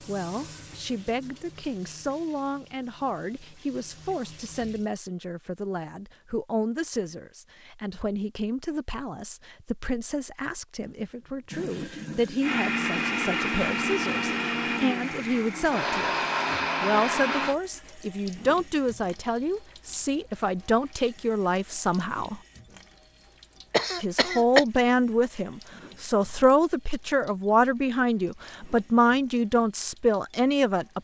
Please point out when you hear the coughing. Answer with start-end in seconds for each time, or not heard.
23.7-24.6.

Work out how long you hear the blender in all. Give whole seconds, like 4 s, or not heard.
5 s.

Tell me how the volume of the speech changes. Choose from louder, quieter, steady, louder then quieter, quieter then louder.
louder.